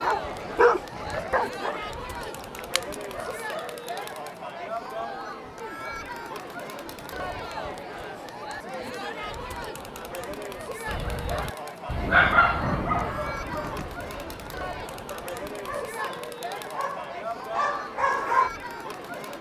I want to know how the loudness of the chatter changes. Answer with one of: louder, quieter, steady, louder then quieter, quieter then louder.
steady.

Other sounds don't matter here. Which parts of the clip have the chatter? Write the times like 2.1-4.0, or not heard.
0.0-19.3.